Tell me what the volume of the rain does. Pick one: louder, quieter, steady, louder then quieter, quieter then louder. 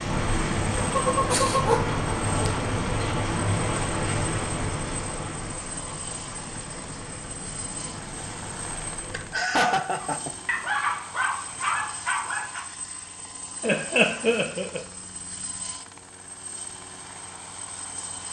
quieter.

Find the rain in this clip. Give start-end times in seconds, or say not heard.
0.0-9.4.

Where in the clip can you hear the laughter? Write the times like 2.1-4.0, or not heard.
0.9-1.6, 9.1-10.3, 13.6-14.8.